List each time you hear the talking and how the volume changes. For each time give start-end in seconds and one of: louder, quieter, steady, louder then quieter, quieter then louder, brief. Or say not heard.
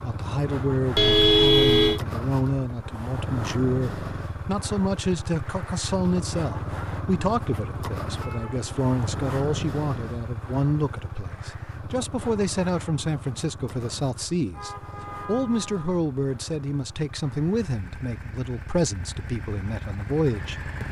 0.0-20.8 steady.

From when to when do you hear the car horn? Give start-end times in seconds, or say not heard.
0.9-2.0, 8.0-8.9, 14.5-16.0.